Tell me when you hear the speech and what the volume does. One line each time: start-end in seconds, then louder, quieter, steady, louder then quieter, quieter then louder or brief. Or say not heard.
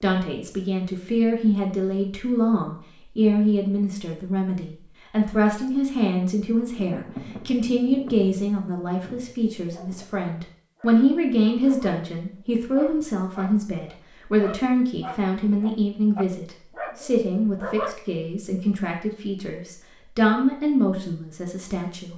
0.0-22.1 steady.